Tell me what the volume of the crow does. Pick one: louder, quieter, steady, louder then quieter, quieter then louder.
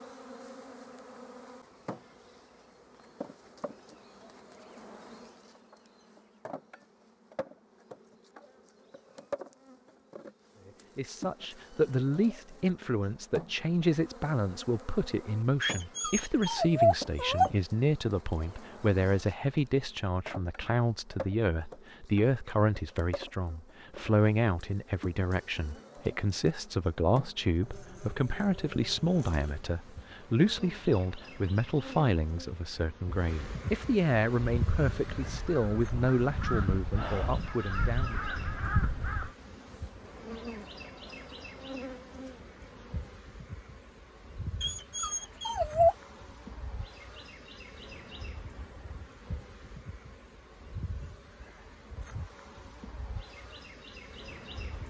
louder.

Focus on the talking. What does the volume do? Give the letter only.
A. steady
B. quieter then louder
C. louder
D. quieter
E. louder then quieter
A.